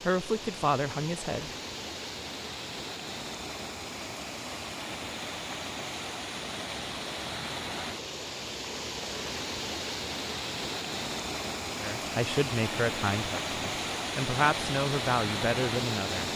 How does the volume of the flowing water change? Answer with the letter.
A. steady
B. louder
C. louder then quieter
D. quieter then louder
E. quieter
B.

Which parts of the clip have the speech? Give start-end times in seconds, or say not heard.
0.0-1.5, 11.8-16.3.